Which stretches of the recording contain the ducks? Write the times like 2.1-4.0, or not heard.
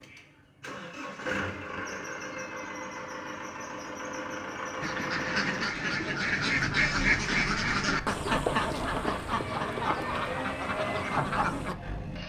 4.8-11.8.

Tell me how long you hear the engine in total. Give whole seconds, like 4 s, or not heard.
12 s.